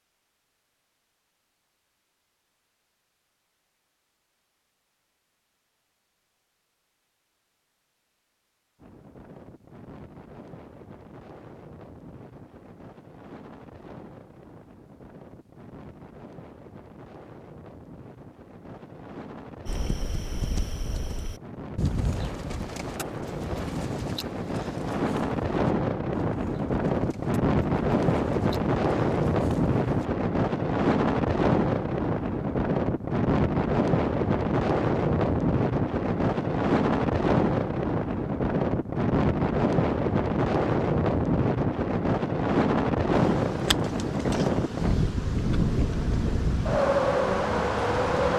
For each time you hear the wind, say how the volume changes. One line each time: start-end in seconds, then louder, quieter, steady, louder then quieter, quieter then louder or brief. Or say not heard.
8.8-48.3 louder.